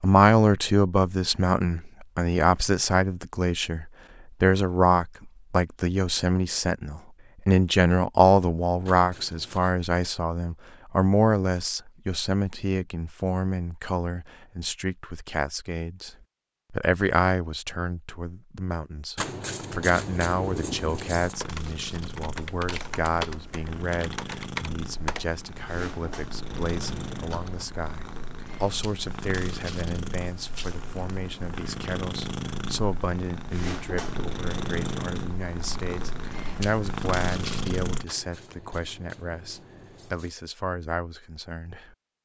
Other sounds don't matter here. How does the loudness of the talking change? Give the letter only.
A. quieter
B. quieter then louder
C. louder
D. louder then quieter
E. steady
A.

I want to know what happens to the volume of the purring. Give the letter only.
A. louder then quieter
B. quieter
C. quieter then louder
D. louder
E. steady
D.